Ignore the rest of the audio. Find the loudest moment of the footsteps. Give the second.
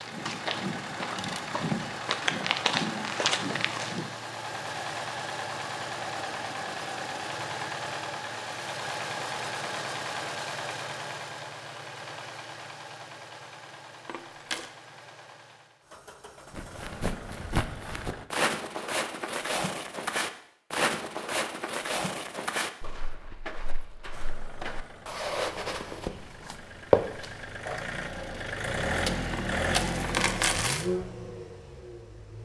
27 s.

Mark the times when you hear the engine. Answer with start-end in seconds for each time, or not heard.
0.0-18.2, 24.1-32.3.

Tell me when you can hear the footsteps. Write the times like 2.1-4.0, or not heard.
0.0-4.1, 16.5-27.8.